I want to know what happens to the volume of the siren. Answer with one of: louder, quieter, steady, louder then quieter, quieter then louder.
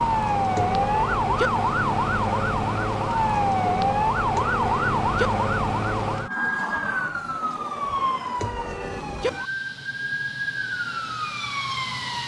quieter.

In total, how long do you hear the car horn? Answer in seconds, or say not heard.
3 s.